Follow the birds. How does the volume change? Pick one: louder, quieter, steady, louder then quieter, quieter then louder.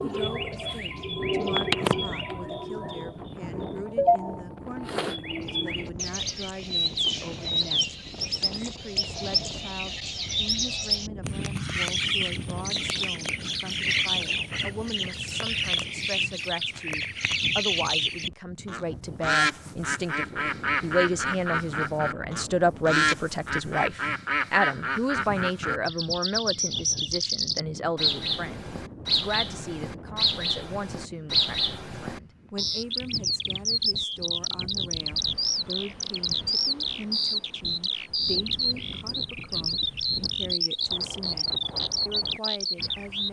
steady.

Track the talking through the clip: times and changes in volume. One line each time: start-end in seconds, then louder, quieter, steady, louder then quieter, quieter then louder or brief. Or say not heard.
0.0-41.5 louder then quieter
42.0-43.2 brief.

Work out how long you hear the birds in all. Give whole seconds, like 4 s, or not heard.
43 s.